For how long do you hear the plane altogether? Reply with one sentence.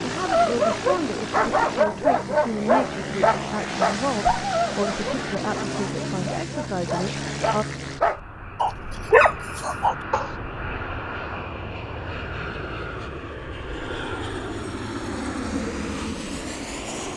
The plane can be heard for 17 seconds in total.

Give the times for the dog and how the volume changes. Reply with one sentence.
You can hear the dog from 0.2 to 10.3 s, getting quieter then louder.